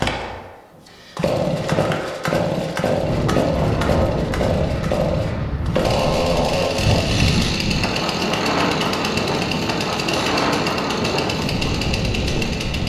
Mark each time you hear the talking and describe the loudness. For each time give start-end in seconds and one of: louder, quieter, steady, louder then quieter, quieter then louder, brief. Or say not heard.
not heard.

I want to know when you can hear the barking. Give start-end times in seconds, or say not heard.
not heard.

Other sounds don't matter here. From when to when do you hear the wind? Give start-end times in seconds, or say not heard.
3.0-12.8.